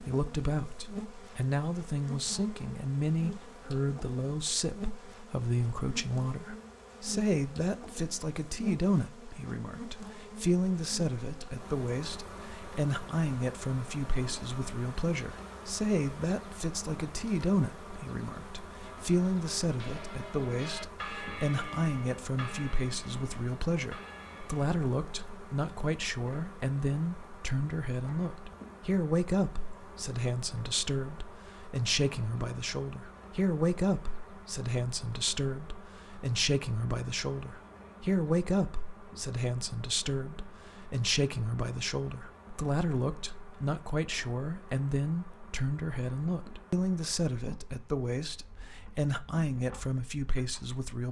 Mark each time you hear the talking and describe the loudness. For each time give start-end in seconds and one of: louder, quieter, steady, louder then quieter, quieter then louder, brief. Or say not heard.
0.0-51.0 steady.